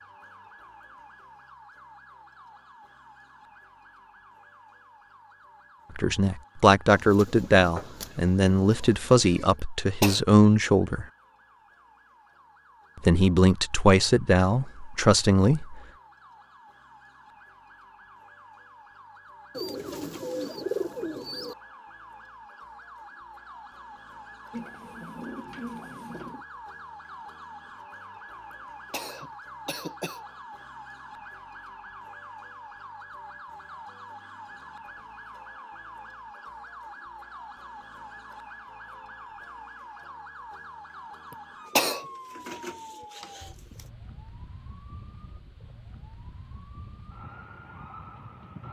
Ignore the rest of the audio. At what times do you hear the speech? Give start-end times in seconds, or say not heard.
6.0-11.1, 13.0-15.8.